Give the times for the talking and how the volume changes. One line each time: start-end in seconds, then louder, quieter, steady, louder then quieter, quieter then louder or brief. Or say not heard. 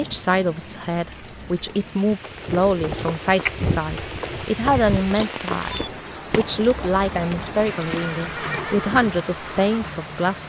0.0-10.4 steady.